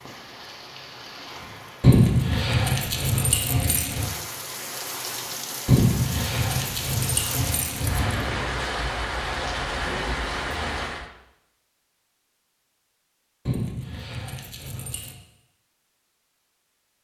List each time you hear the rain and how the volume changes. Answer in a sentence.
You can hear the rain from 0.0 to 11.1 s, getting louder.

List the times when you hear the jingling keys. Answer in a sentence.
The jingling keys can be heard from 1.8 to 4.0 s, from 5.7 to 8.2 s and from 13.4 to 15.2 s.